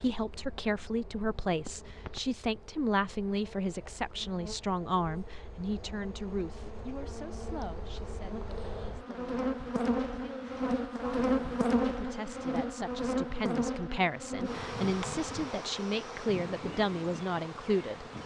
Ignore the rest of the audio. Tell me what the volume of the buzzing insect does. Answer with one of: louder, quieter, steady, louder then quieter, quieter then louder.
louder then quieter.